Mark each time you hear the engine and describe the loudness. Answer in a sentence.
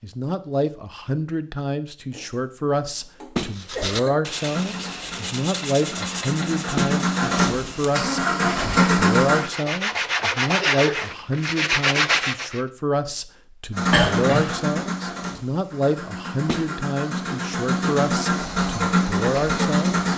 You can hear the engine from 4.5 to 9.4 s, getting louder; and from 13.7 to 20.1 s, getting quieter then louder.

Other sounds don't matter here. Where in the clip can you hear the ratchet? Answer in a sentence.
You can't hear the ratchet here.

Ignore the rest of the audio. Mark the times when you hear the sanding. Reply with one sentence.
You can hear the sanding from 3.5 to 12.6 s.